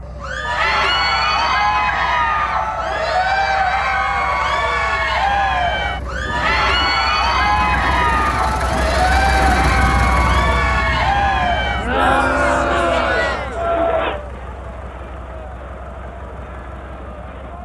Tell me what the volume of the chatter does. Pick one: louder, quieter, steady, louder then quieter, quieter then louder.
quieter.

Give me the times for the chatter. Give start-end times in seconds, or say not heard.
0.1-17.5.